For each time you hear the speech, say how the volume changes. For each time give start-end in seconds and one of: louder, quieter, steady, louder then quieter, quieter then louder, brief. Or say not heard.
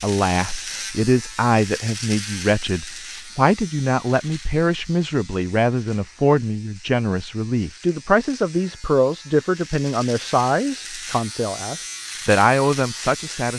0.0-13.5 steady.